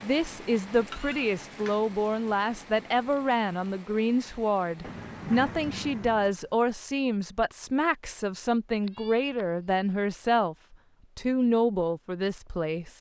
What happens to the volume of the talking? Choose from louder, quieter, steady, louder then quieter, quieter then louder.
steady.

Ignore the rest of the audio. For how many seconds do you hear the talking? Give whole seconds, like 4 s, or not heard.
13 s.